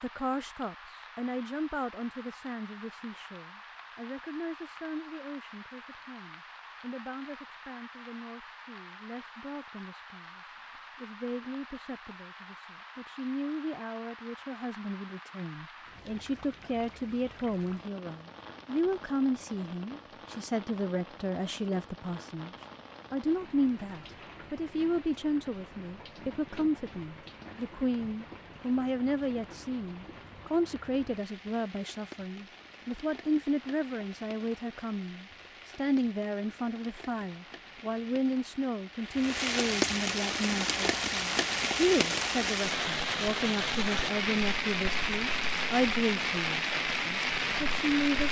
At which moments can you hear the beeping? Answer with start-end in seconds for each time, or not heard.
not heard.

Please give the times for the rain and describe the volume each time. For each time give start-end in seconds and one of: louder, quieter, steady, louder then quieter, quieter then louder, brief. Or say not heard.
0.0-48.2 louder.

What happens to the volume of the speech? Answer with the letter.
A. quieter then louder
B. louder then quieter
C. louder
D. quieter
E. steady
C.